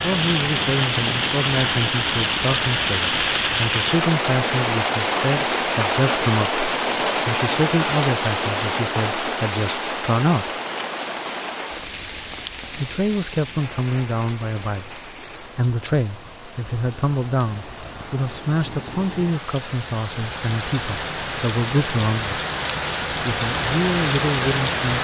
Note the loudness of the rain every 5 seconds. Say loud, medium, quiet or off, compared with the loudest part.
loud, loud, medium, quiet, loud.